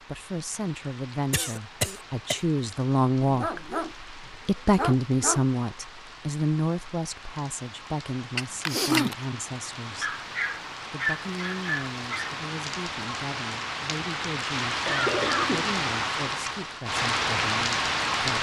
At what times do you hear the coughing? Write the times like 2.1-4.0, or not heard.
1.3-2.4, 8.3-9.2, 14.8-15.8.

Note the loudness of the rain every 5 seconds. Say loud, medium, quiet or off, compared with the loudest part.
quiet, quiet, medium, loud.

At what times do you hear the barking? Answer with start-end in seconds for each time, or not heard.
3.2-5.5, 10.0-12.4.